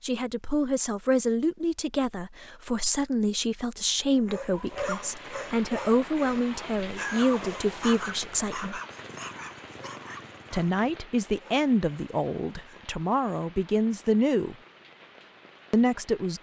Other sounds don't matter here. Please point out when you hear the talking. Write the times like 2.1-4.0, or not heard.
0.0-8.8, 10.5-14.6, 15.7-16.3.